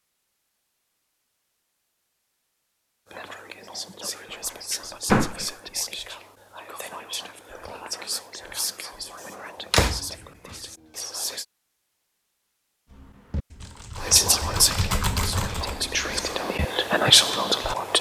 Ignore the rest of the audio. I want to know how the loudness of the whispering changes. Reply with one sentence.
The volume of the whispering goes up.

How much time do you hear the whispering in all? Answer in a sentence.
The whispering can be heard for 12 seconds in total.